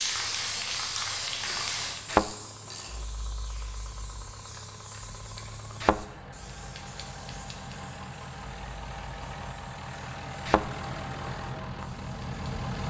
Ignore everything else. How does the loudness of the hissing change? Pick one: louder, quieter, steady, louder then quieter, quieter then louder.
quieter.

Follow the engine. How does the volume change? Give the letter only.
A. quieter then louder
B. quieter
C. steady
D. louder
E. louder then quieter
D.